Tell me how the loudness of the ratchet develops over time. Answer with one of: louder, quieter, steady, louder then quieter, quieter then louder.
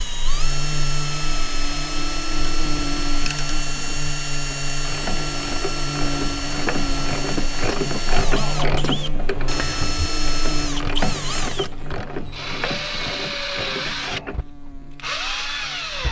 louder then quieter.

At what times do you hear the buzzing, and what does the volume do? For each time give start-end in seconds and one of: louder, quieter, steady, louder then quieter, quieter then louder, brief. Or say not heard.
0.0-16.0 quieter.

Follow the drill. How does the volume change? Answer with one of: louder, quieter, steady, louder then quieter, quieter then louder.
steady.